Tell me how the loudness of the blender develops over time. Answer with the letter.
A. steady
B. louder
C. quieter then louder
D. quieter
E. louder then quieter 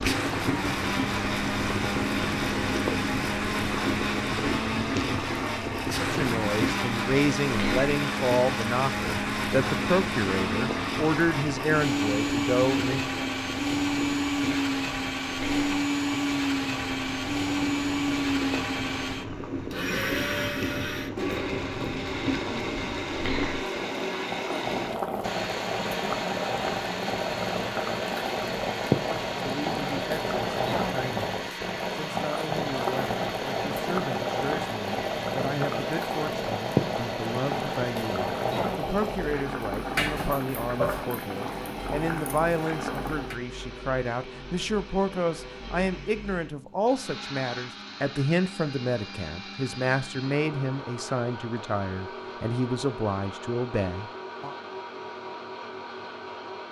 D.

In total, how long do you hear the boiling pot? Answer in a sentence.
You can hear the boiling pot for 43 seconds altogether.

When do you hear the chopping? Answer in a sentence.
You can't hear the chopping here.